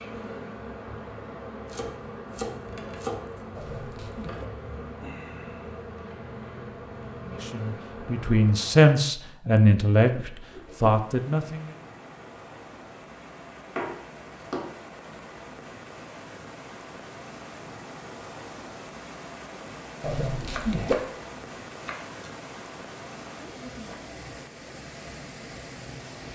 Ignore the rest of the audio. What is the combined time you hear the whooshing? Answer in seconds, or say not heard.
3 s.